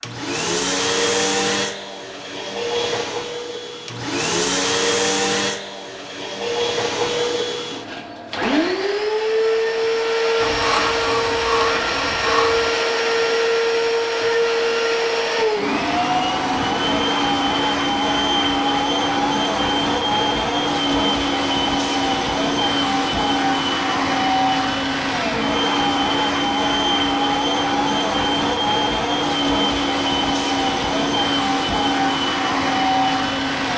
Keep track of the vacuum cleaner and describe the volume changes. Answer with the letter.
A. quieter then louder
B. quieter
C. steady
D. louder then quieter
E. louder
C.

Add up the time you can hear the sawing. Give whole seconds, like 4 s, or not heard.
2 s.